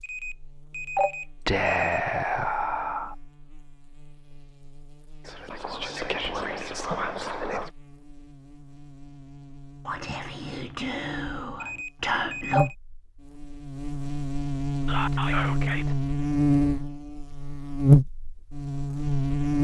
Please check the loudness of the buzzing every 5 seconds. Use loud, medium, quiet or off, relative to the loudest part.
quiet, quiet, medium, loud.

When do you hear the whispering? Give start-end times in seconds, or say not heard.
1.4-3.1, 5.2-7.7, 9.8-12.7, 14.8-15.9.